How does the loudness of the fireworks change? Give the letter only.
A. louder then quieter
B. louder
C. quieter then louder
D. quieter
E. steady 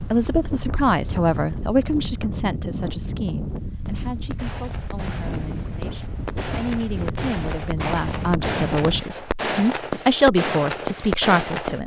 B.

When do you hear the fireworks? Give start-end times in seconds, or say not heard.
3.9-11.8.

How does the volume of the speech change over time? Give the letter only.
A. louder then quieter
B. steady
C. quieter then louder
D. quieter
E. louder
C.